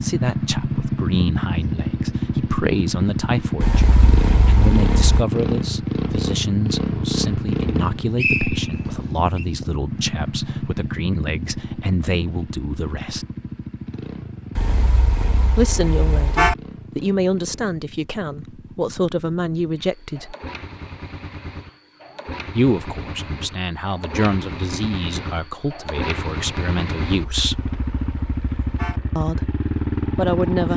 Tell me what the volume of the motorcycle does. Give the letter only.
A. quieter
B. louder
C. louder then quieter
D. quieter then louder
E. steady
D.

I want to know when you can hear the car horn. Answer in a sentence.
The car horn can be heard from 3.6 to 5.2 s, from 14.6 to 16.6 s and from 27.1 to 29.0 s.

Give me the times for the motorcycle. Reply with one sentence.
You can hear the motorcycle from 0.0 to 30.7 s.